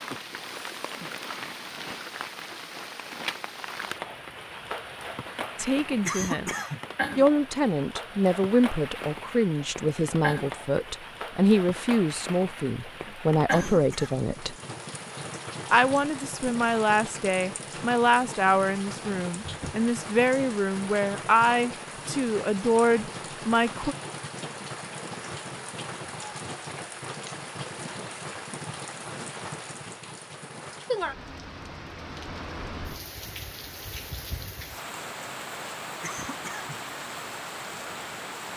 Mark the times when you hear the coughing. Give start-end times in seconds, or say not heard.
6.0-6.8, 13.4-14.2, 36.0-36.8.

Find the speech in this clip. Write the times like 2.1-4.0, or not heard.
5.5-6.5, 7.2-14.6, 15.7-23.9.